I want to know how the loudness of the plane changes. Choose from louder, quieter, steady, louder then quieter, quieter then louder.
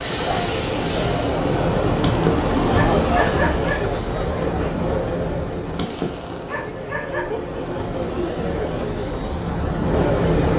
quieter then louder.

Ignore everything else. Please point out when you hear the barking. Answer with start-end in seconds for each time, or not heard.
1.9-3.8, 5.7-7.3.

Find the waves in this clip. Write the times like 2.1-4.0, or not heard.
not heard.